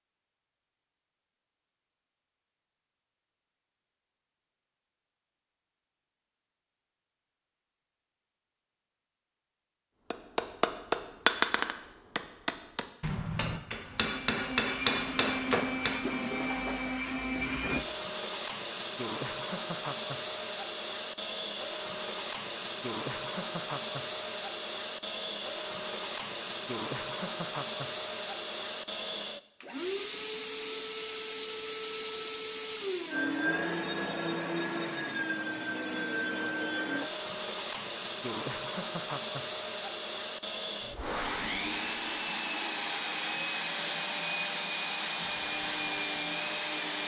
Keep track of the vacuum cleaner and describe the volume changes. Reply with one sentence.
The loudness of the vacuum cleaner stays about the same.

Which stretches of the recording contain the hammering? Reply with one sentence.
You can hear the hammering from 10.1 to 16.0 s.